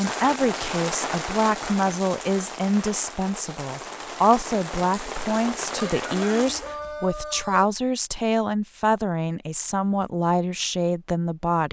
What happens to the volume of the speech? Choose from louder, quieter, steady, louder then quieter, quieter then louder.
steady.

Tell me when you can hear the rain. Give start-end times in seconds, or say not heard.
0.0-6.8.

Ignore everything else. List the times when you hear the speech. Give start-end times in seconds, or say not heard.
0.0-11.6.